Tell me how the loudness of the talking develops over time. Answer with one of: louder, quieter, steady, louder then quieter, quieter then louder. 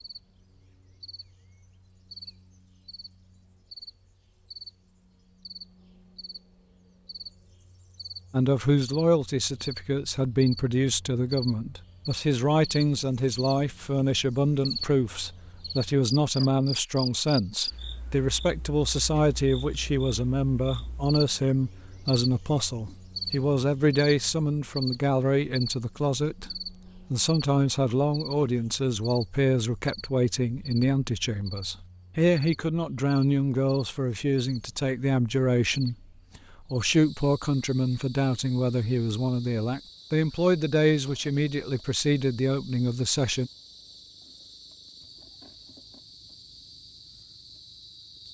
steady.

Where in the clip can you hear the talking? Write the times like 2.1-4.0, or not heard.
8.3-43.5.